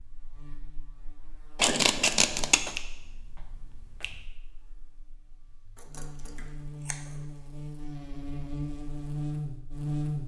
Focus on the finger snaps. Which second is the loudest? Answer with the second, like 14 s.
3 s.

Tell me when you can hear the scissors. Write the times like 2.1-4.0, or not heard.
1.6-2.8, 5.8-7.2.